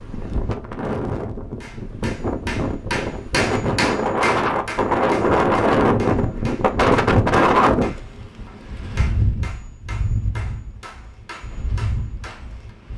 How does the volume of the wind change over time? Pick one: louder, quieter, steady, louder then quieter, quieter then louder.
louder then quieter.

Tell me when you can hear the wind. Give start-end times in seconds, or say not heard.
0.0-12.9.